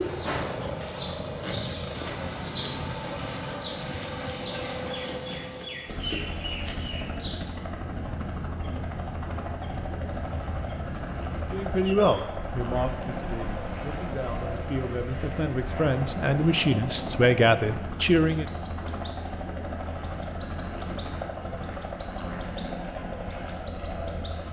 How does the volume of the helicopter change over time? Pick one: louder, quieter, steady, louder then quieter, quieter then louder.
steady.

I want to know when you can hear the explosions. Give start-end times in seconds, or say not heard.
not heard.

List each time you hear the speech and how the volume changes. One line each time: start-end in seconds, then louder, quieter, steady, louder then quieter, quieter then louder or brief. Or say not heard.
11.5-18.4 quieter then louder.